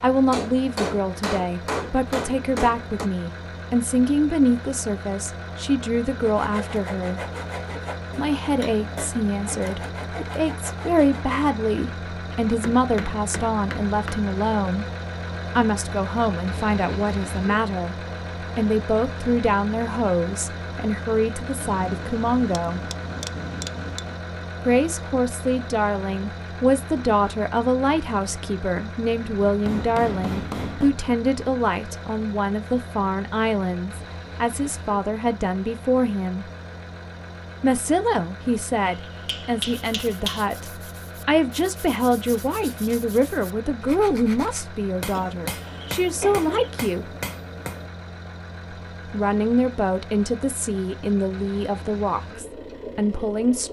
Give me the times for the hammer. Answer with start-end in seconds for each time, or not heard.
0.3-3.1, 12.3-14.2, 21.6-24.2, 29.4-30.9, 38.9-40.5, 45.0-47.9.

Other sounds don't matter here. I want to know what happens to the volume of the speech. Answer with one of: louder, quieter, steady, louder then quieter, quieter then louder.
steady.